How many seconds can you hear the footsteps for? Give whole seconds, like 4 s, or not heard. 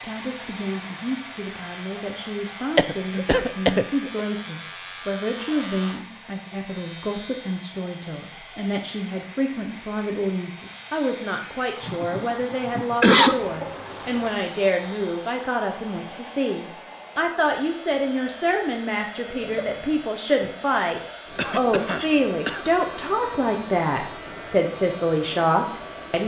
not heard.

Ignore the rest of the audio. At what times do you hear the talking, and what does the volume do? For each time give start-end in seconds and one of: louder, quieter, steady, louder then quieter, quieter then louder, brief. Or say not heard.
0.0-26.2 louder.